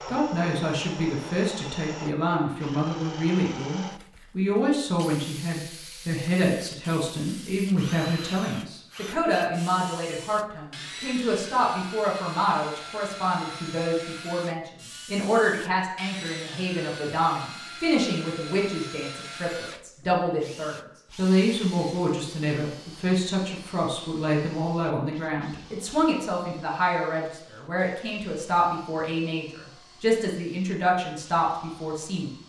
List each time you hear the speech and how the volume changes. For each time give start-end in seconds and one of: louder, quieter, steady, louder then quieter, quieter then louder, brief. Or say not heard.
0.1-32.3 steady.